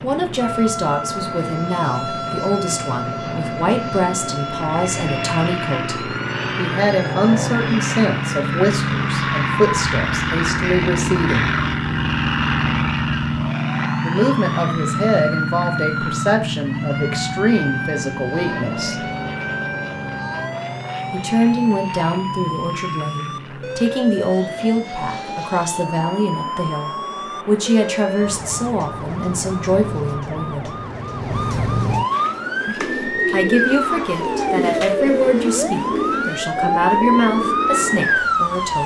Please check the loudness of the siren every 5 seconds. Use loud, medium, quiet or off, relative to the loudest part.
medium, medium, medium, medium, medium, medium, loud, loud.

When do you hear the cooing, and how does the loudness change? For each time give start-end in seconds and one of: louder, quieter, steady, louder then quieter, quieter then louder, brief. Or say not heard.
32.1-38.2 steady.